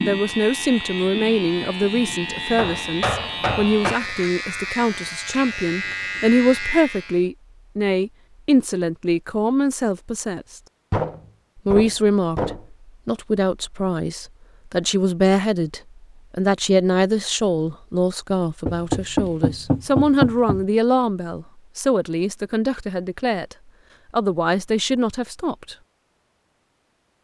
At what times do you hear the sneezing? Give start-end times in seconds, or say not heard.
not heard.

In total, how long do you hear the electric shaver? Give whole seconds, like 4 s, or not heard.
7 s.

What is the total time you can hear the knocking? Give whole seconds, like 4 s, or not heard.
5 s.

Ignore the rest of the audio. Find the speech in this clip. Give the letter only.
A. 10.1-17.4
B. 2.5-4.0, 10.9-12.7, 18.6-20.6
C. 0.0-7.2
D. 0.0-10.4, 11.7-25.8
D.